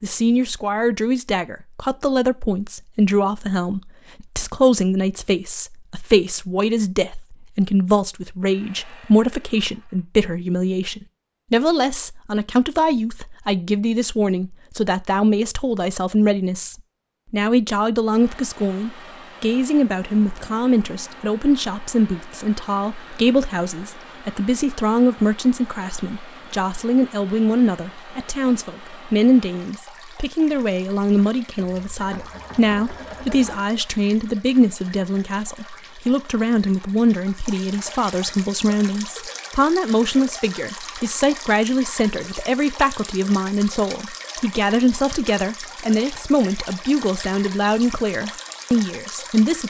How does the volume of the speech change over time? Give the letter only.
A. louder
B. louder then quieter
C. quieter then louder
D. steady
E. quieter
D.